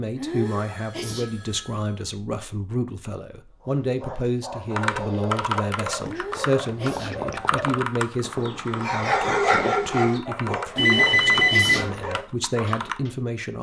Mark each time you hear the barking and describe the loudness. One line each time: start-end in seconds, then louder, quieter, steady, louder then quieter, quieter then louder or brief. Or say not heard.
3.6-13.1 louder then quieter.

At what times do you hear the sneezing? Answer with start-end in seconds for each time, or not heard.
0.1-1.4, 6.0-7.2, 10.7-11.9.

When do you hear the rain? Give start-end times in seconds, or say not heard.
not heard.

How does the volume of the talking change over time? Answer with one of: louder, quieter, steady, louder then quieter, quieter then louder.
steady.